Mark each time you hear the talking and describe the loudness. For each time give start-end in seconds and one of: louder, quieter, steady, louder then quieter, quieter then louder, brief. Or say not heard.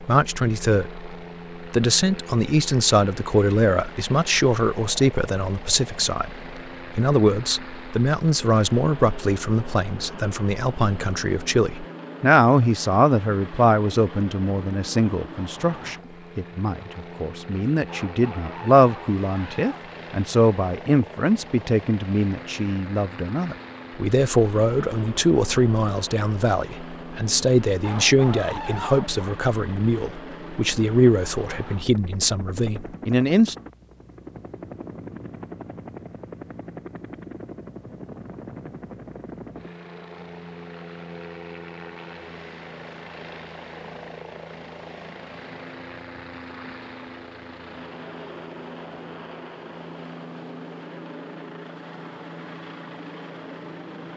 0.0-33.5 steady.